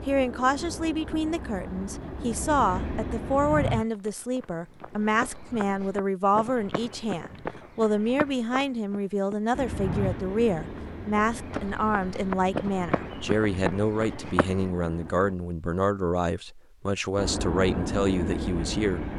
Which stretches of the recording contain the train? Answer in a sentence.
You can hear the train from 0.0 to 3.8 s, from 9.5 to 15.3 s and from 17.1 to 19.1 s.